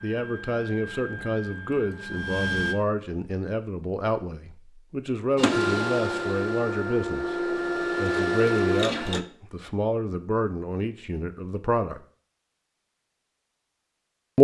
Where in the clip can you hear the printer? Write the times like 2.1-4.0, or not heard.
0.0-2.8, 5.3-9.2.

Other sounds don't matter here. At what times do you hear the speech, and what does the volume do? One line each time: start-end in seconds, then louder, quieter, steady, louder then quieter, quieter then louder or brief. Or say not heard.
0.0-12.0 steady.